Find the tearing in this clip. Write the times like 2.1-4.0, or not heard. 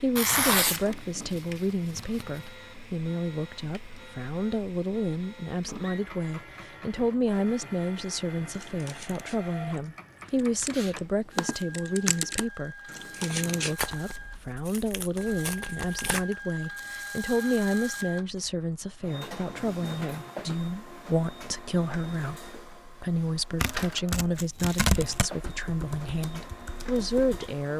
0.1-2.3, 13.8-16.4, 23.6-25.3.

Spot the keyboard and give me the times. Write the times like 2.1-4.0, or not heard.
8.5-13.8, 25.4-27.6.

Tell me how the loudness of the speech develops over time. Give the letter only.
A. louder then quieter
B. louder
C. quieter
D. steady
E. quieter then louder
D.